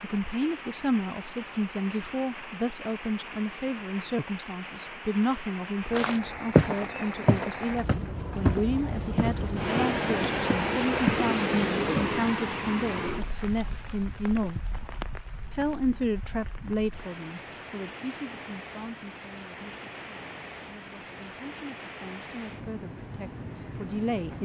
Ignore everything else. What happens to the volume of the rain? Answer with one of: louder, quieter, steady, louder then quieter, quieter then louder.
louder then quieter.